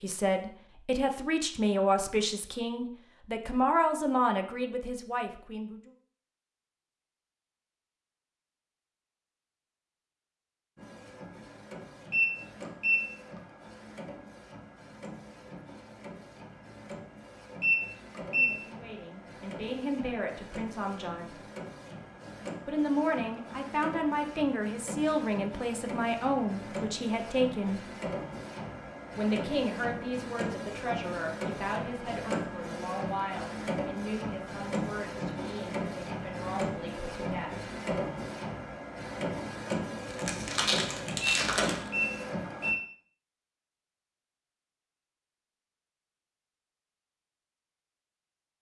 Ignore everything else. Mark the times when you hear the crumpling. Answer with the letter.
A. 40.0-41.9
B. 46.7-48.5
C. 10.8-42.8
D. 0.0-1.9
A.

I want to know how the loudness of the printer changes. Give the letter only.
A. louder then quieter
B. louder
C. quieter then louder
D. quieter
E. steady
B.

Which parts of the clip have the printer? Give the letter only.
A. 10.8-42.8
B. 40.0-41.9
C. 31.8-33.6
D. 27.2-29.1
A.